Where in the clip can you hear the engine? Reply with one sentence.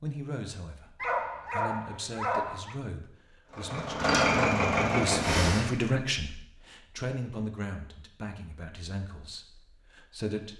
The engine can be heard from 3.5 to 5.7 s.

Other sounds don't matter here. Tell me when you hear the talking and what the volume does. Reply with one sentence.
The talking can be heard from 0.0 to 10.5 s, getting louder then quieter.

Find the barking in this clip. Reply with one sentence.
The barking can be heard from 1.0 to 2.8 s.